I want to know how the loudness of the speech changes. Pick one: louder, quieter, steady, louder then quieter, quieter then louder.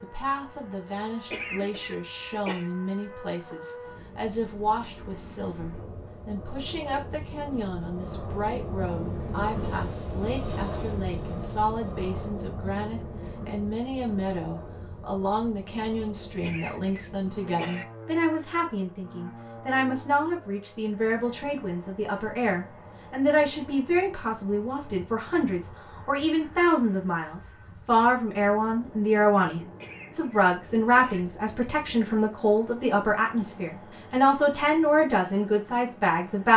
louder.